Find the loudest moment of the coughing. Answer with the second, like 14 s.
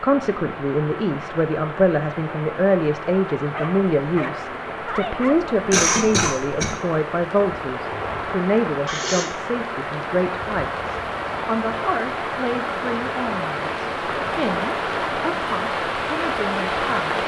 6 s.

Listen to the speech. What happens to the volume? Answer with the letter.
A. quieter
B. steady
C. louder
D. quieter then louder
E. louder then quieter
A.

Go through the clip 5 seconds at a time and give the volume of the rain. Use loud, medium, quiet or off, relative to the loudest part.
medium, medium, loud, loud.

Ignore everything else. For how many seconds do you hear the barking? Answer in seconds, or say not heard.
2 s.